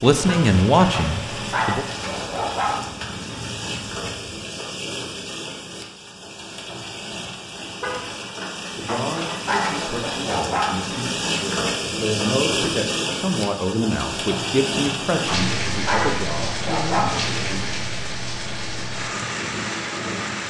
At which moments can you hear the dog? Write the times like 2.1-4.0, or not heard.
0.9-2.9, 8.8-10.8, 15.2-17.2.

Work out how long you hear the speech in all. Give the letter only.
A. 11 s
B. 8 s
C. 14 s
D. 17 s
A.